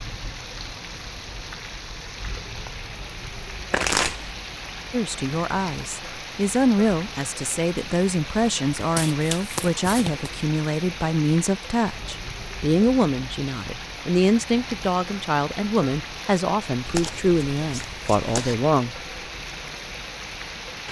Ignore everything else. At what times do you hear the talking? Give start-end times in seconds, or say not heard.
4.9-18.9.